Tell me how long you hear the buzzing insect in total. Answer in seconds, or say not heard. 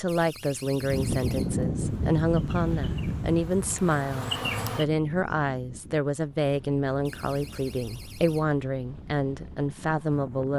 3 s.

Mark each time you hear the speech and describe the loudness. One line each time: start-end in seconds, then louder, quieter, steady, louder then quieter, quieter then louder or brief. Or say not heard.
0.0-10.5 steady.